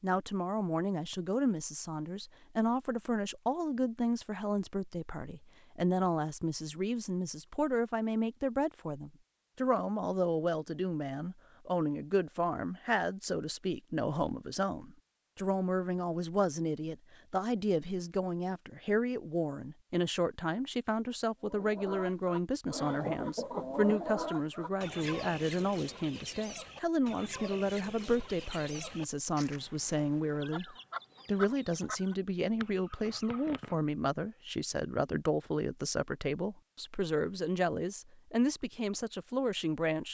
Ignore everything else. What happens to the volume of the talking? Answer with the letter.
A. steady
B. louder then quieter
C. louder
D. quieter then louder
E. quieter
A.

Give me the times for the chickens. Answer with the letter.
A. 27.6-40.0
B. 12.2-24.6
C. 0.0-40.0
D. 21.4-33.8
D.